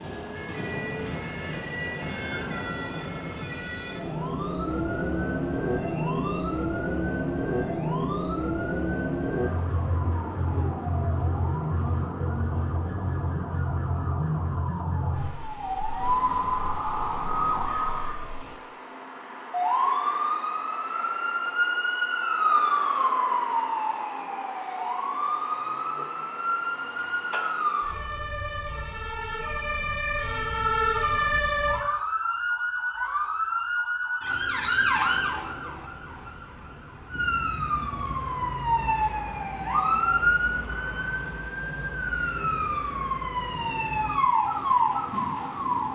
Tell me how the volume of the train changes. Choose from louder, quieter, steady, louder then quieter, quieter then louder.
quieter.